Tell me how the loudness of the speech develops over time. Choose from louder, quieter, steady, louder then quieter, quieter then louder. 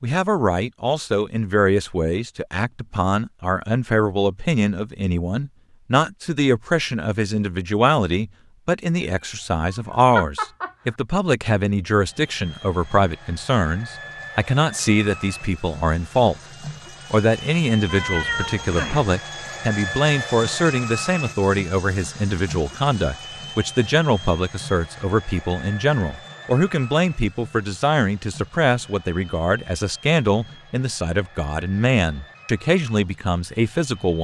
steady.